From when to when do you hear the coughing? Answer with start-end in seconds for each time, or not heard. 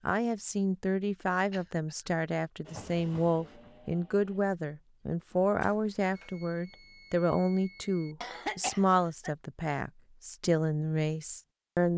1.5-2.1, 5.6-6.3, 8.2-9.3.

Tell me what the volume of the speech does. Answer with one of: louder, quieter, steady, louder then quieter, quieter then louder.
steady.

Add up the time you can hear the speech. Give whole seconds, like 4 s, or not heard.
12 s.